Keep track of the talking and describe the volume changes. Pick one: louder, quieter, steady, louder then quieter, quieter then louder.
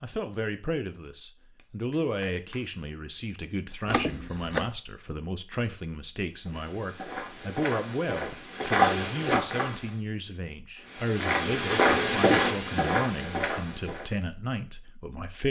steady.